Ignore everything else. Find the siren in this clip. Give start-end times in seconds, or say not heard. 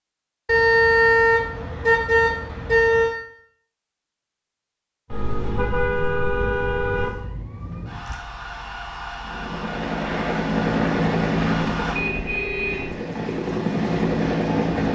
5.0-12.0.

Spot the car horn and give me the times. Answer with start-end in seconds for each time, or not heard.
0.5-3.1, 5.1-7.1, 11.9-12.9.